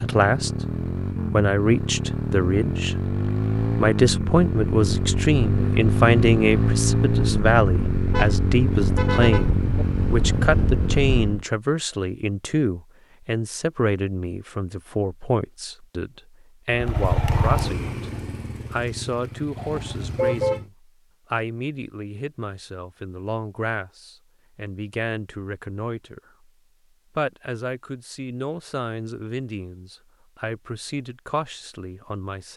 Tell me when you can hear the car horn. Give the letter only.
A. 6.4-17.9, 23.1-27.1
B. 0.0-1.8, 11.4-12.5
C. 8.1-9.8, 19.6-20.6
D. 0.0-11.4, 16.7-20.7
C.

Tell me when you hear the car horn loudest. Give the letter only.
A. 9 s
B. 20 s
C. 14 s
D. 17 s
B.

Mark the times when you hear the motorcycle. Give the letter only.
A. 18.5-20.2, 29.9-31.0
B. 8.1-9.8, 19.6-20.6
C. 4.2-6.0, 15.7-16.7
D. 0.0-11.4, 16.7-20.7
D.